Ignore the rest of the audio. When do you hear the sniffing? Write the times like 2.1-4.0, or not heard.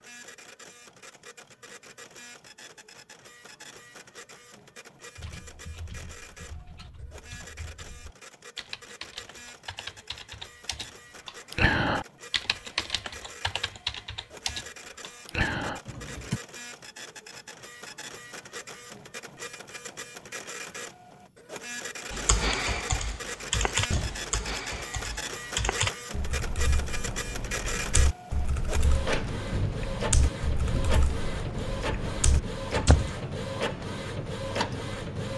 not heard.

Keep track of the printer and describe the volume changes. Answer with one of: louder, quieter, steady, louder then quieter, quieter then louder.
louder.